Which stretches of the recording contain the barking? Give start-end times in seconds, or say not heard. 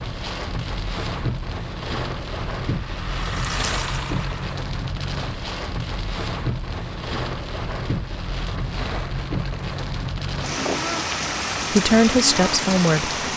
not heard.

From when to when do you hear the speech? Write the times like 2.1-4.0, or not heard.
11.7-13.2.